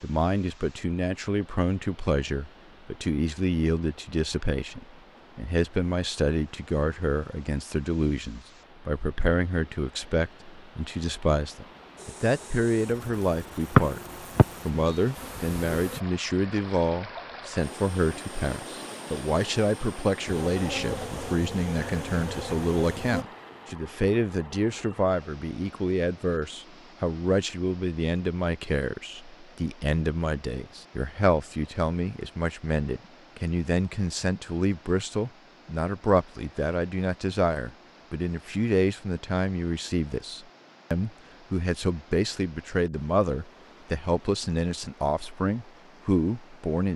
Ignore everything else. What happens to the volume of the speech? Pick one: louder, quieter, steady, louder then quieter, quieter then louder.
steady.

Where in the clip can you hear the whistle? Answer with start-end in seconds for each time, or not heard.
13.8-15.0.